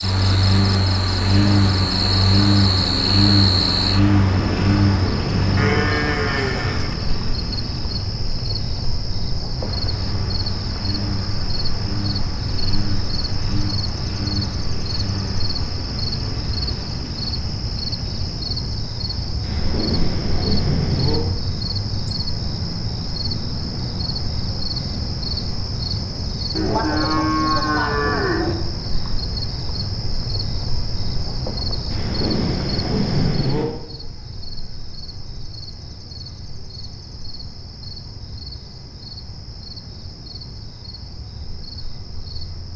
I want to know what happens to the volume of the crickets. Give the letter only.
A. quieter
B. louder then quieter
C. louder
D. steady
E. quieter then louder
A.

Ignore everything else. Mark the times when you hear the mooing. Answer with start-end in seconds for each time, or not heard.
5.5-7.0, 26.6-28.6.